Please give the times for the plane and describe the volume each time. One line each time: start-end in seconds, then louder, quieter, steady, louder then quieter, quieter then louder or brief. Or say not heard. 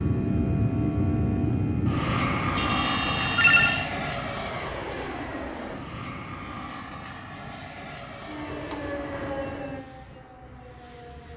0.0-11.3 quieter.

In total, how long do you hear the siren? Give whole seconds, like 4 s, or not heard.
3 s.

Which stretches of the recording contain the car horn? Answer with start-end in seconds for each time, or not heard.
2.5-3.9.